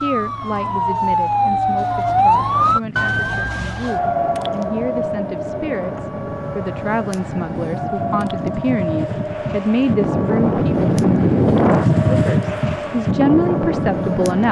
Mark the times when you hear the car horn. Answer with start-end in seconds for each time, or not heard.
not heard.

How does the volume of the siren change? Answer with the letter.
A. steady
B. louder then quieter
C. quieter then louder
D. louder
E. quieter
E.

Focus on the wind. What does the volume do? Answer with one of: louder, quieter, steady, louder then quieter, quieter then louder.
louder.